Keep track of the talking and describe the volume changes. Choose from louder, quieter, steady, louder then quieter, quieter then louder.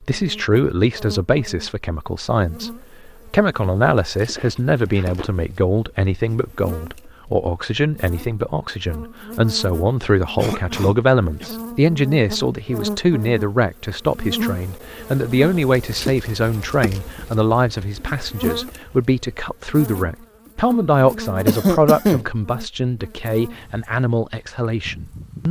steady.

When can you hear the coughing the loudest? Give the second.
22 s.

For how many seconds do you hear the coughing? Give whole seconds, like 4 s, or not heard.
3 s.